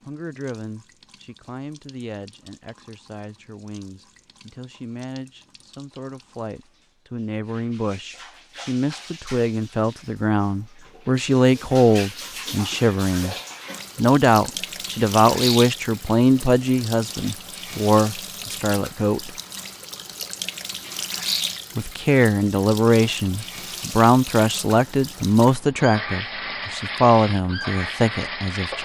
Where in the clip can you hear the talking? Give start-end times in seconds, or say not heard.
0.1-13.3, 13.9-19.3, 21.8-28.8.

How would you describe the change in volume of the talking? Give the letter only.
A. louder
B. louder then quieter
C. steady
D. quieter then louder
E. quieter
A.